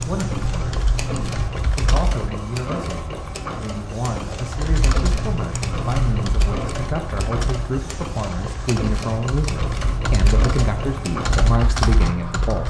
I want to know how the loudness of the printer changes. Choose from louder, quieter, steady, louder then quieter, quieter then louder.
steady.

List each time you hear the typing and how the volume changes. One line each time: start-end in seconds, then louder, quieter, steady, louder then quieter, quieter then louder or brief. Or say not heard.
0.0-2.4 brief
4.5-12.6 quieter then louder.